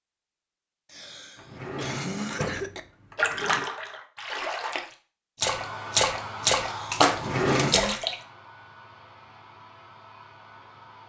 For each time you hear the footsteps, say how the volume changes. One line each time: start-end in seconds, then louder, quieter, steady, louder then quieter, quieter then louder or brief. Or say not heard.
not heard.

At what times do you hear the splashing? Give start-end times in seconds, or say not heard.
3.1-8.2.